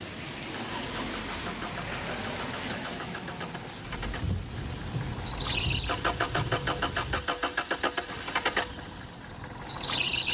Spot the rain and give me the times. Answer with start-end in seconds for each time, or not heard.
0.0-7.3.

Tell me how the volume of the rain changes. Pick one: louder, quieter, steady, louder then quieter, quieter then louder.
steady.